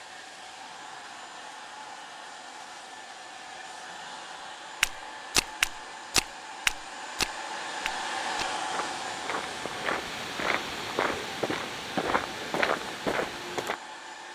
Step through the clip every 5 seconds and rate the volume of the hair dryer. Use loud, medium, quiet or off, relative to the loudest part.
medium, loud, medium.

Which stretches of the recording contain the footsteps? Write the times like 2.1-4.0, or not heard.
4.8-13.8.